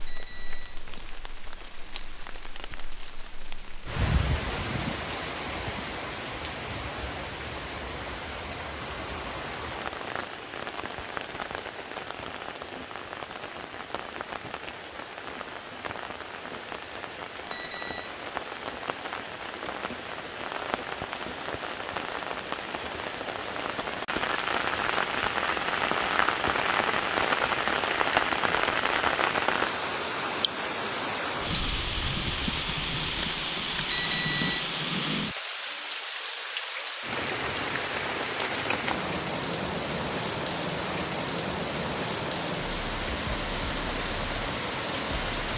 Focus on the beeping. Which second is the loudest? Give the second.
34 s.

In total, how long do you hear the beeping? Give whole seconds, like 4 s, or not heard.
2 s.